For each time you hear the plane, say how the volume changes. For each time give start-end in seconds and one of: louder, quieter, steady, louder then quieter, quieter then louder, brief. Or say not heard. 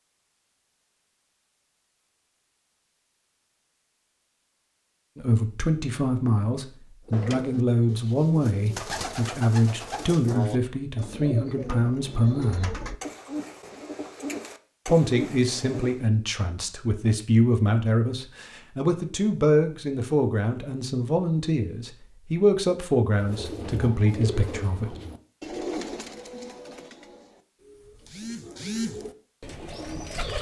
not heard.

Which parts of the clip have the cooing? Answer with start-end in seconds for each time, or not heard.
7.0-16.0, 23.1-30.3.